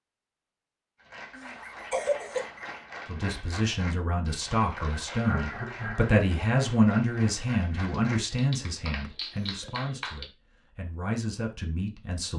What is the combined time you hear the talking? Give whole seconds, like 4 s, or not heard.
9 s.